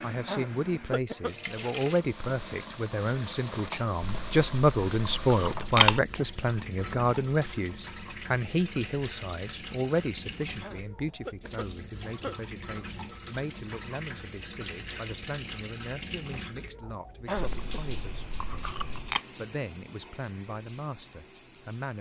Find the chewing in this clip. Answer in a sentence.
The chewing can be heard from 4.0 to 6.0 s and from 17.4 to 19.2 s.